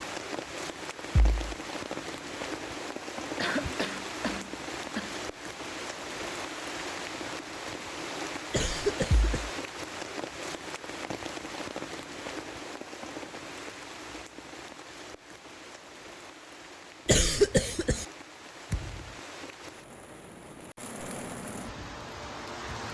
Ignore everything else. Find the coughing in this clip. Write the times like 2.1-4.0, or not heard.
3.4-5.2, 8.5-9.4, 17.1-18.1.